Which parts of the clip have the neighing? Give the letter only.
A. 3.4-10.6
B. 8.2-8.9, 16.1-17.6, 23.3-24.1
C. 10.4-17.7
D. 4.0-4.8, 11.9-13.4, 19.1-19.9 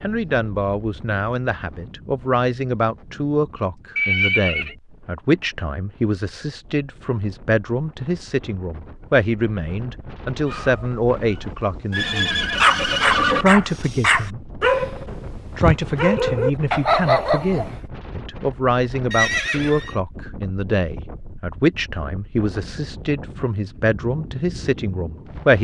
D.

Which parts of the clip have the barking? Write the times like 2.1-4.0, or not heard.
10.4-17.7.